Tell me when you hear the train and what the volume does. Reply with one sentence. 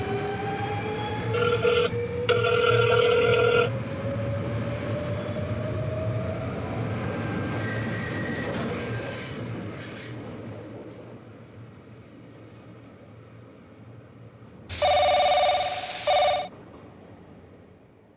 The train can be heard from 0.0 to 18.1 s, getting quieter.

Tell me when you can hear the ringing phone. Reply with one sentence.
The ringing phone can be heard from 1.3 to 3.7 s, from 6.8 to 9.3 s and from 14.7 to 16.5 s.